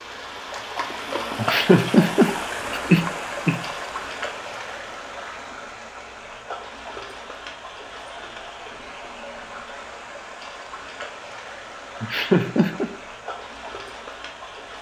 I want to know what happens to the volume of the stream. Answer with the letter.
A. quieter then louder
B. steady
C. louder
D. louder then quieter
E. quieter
E.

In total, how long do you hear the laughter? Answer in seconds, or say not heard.
3 s.